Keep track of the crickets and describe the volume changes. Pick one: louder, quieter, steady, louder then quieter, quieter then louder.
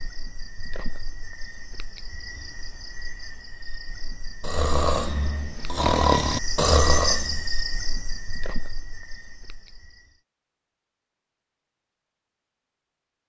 louder then quieter.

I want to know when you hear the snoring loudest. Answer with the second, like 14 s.
6 s.